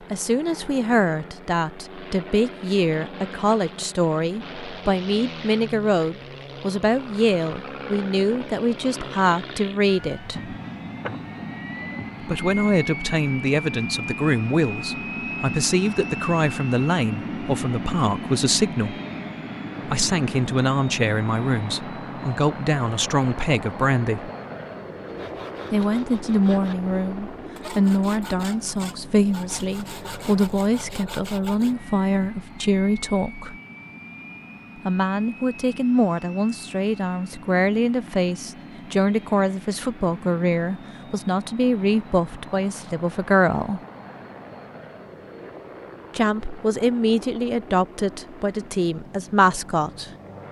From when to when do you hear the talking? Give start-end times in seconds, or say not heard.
0.1-10.6, 12.2-18.9, 19.9-24.3, 25.7-33.5, 34.9-43.8, 46.1-50.1.